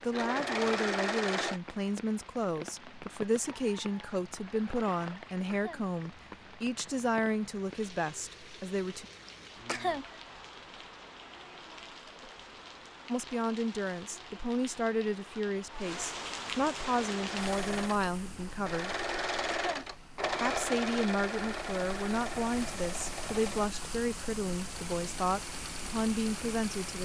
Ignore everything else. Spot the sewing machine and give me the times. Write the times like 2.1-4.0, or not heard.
0.0-1.6, 16.8-27.0.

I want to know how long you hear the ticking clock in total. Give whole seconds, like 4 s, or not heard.
not heard.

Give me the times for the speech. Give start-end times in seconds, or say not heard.
0.0-9.1, 13.1-19.0, 20.4-27.0.